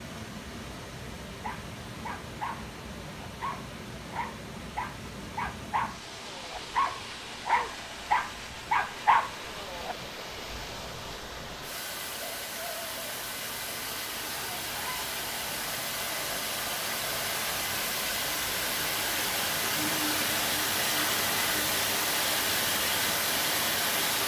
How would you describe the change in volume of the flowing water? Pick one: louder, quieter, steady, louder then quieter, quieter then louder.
louder.